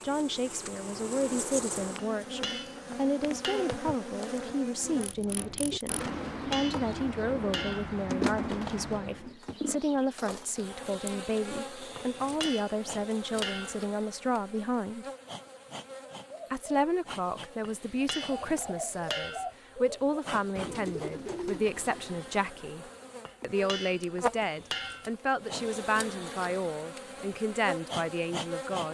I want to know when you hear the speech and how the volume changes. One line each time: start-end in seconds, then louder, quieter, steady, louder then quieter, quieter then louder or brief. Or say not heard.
0.0-15.1 steady
16.5-28.8 steady.